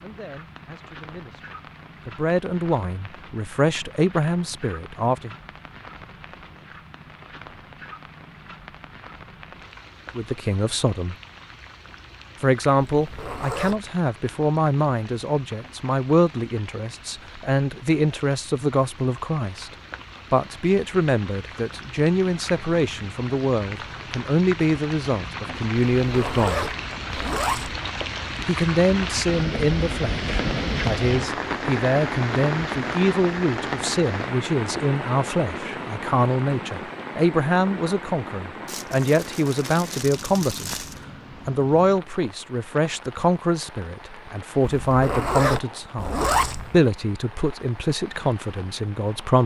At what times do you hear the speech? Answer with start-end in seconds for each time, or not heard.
0.0-5.3, 10.2-11.2, 12.4-26.8, 28.4-40.8, 41.5-49.4.